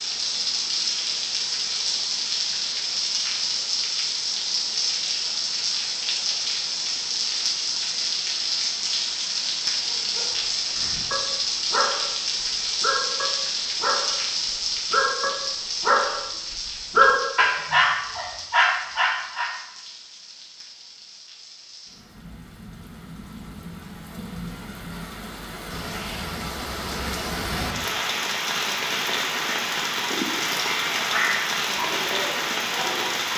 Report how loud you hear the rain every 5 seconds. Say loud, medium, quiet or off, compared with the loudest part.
loud, loud, loud, medium, quiet, loud, loud.